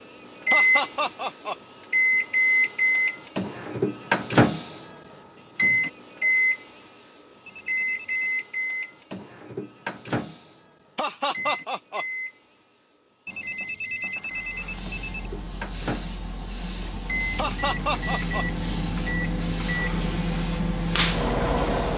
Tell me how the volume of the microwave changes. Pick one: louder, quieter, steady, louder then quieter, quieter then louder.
quieter then louder.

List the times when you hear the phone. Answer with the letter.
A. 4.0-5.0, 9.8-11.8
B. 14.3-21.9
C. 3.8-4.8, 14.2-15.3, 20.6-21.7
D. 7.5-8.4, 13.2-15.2
D.